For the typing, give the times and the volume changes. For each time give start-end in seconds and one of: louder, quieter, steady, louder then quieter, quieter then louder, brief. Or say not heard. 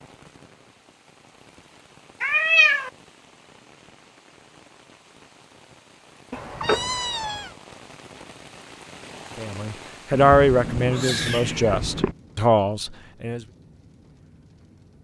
not heard.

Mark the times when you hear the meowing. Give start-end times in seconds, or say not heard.
2.2-2.9, 6.3-7.5, 10.1-12.2.